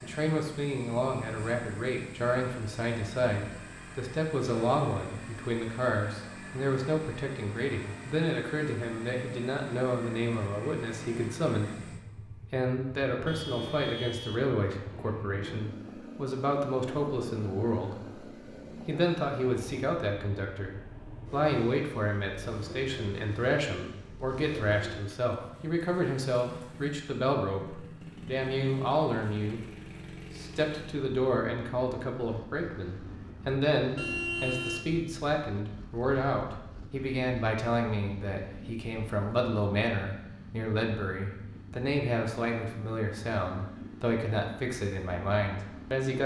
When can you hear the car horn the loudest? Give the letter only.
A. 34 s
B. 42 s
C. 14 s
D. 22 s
A.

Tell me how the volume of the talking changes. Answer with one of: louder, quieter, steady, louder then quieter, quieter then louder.
steady.